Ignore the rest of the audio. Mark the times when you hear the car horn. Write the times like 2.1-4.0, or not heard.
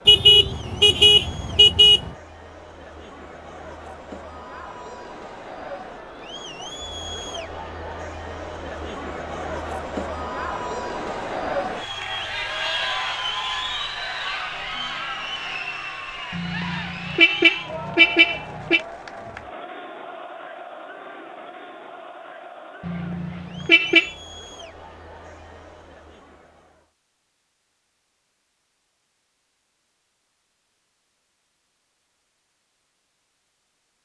0.1-2.1, 16.3-18.8, 22.9-24.1.